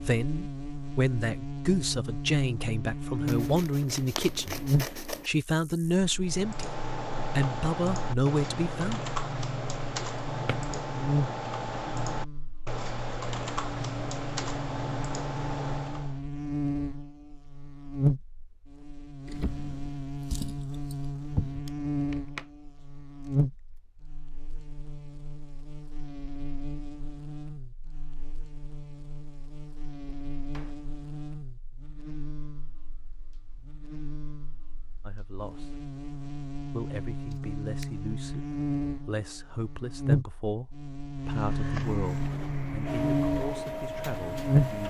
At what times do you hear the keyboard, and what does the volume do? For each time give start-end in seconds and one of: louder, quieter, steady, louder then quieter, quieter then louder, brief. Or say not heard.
6.2-16.2 steady.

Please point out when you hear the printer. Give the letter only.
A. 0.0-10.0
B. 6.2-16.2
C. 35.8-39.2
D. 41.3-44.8
D.